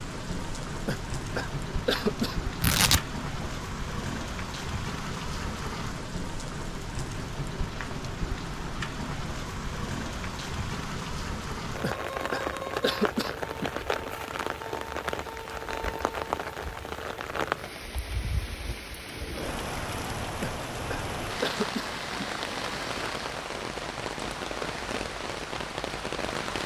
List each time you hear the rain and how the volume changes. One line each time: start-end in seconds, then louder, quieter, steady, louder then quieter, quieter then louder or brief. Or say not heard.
0.0-26.6 steady.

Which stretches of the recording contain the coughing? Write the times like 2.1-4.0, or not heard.
0.8-2.5, 11.8-13.8, 20.4-22.4.